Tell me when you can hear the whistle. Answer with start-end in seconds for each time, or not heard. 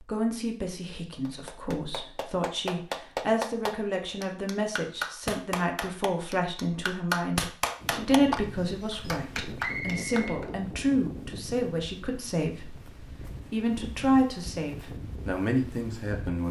9.6-10.4.